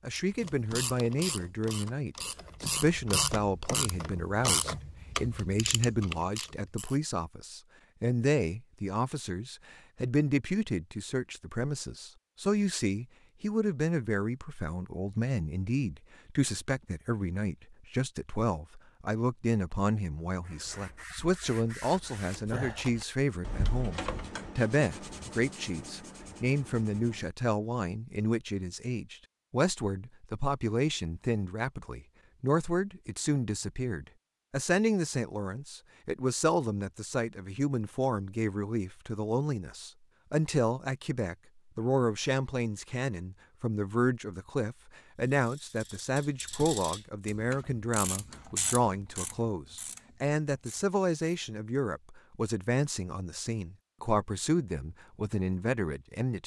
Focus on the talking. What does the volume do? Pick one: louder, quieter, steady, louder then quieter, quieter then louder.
steady.